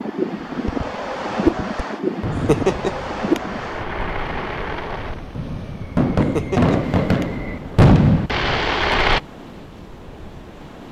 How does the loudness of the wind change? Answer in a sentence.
The loudness of the wind goes down.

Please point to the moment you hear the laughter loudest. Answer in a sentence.
The loudest moment of the laughter is at 3 seconds.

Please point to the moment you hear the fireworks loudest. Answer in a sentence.
The volume of the fireworks peaks at 8 seconds.